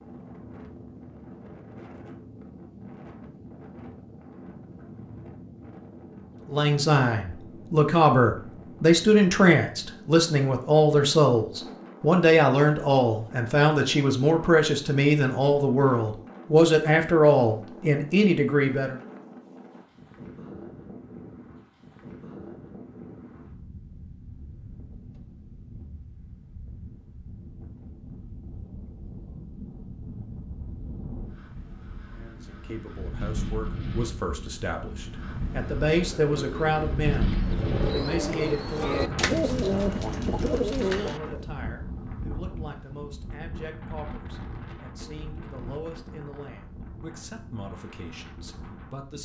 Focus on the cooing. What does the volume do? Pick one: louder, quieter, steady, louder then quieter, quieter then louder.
louder.